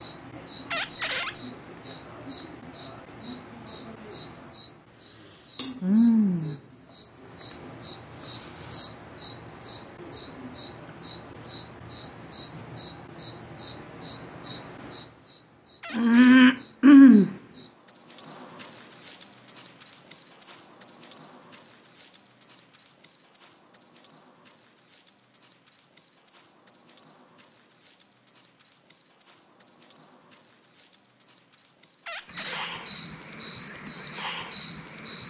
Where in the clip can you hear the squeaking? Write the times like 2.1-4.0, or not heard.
0.7-1.4, 15.8-16.4, 32.0-32.7.